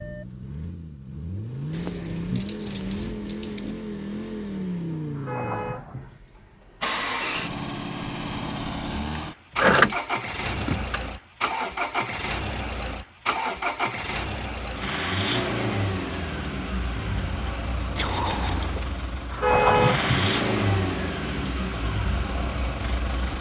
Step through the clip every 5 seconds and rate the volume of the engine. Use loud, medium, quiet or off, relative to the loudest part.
medium, loud, loud, loud, loud.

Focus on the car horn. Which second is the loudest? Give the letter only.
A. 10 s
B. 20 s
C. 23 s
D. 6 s
B.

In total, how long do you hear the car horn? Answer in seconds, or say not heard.
2 s.